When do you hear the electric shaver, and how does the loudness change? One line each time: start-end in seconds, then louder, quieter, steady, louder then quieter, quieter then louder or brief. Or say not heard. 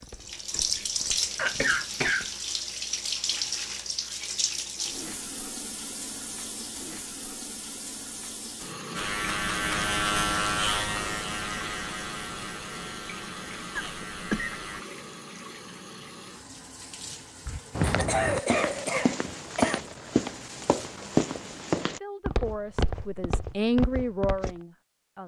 8.9-14.8 quieter.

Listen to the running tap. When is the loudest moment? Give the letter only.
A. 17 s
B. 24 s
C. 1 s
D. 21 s
C.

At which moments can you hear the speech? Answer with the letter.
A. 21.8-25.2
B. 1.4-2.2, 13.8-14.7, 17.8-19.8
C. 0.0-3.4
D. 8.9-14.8
A.